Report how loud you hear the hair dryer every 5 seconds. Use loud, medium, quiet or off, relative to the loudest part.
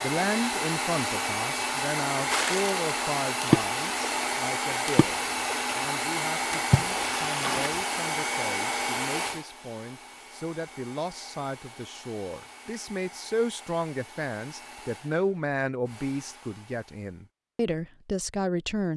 loud, loud, quiet, quiet.